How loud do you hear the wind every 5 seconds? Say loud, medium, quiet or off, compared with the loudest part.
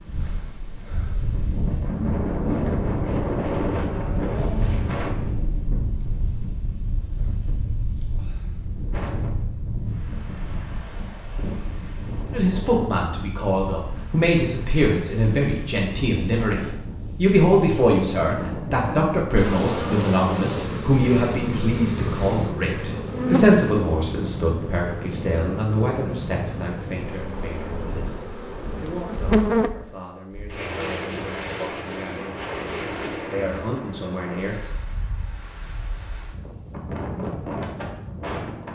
loud, medium, medium, medium, medium, medium, medium, medium.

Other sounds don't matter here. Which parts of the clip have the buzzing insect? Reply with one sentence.
The buzzing insect can be heard from 19.4 to 29.7 s.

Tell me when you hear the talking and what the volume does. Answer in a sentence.
You can hear the talking from 12.3 to 32.5 s, getting quieter; and briefly from 33.2 to 34.6 s.